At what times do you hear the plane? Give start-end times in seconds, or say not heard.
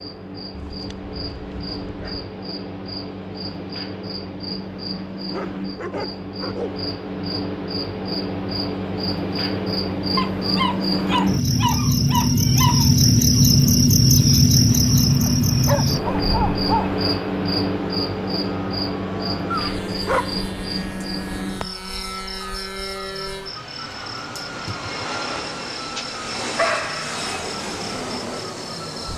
14.6-29.1.